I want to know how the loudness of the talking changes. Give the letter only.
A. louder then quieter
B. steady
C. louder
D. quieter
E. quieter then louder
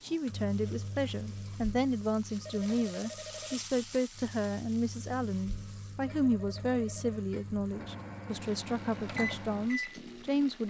B.